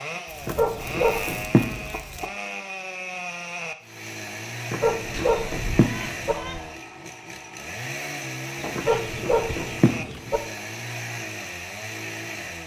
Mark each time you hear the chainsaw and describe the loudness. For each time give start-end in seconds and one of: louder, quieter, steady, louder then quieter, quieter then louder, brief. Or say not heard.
0.0-12.6 steady.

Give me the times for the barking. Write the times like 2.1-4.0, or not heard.
0.5-1.9, 4.7-6.3, 8.8-10.4.